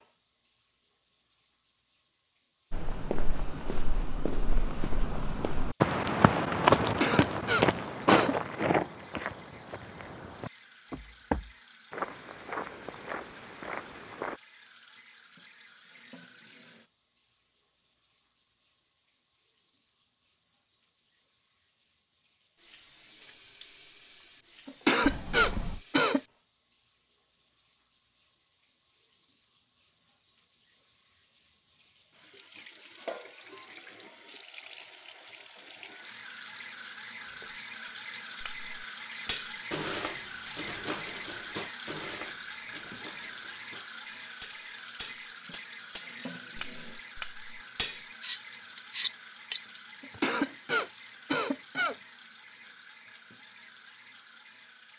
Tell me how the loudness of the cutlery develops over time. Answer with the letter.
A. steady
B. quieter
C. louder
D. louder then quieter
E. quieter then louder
E.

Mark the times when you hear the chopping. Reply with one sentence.
The chopping can't be heard in this clip.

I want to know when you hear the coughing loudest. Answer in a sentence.
The volume of the coughing peaks at 25 seconds.